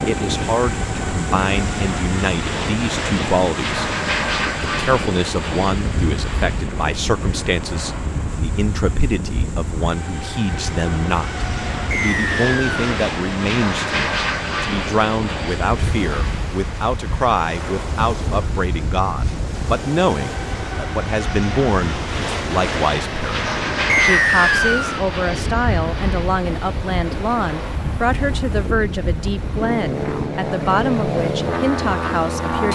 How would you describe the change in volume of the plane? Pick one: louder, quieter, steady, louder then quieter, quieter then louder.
steady.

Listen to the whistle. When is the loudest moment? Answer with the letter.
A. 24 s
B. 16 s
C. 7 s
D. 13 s
A.